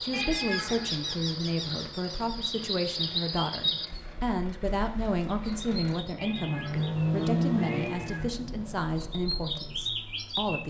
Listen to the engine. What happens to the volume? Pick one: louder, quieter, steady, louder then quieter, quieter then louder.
louder then quieter.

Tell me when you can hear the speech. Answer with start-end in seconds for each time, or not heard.
0.0-10.6.